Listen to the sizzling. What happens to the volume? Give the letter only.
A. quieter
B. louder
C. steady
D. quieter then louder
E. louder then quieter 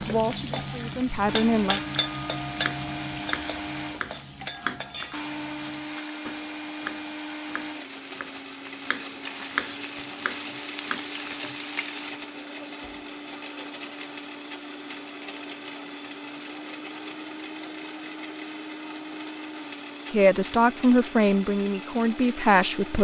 D.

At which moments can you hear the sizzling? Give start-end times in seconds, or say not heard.
0.0-12.2.